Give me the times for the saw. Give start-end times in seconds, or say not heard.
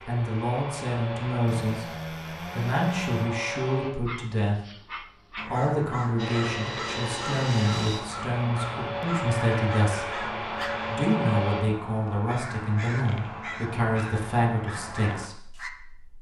1.4-3.3.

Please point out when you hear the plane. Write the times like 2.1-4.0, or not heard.
0.0-3.9, 6.2-11.7.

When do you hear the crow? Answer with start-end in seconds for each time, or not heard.
5.3-15.7.